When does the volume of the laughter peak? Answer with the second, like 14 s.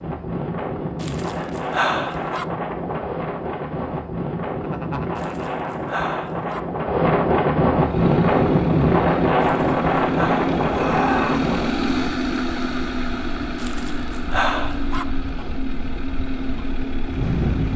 11 s.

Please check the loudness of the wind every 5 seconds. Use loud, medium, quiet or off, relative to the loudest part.
medium, loud, medium, medium.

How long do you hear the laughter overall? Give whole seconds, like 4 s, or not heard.
2 s.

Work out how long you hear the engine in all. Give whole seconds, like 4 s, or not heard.
10 s.